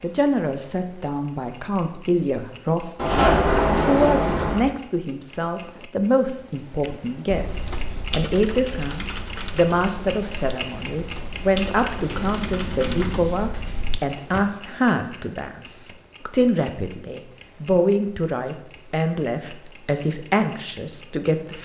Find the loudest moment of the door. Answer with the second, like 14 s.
3 s.